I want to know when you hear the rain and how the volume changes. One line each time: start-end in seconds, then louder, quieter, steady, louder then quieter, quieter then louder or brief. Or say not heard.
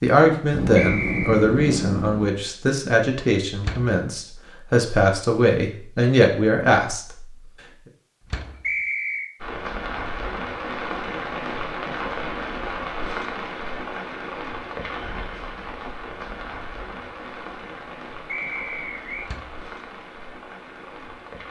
9.3-21.4 quieter.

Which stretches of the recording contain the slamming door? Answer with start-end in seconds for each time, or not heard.
3.5-4.0, 8.2-8.7, 19.2-19.6.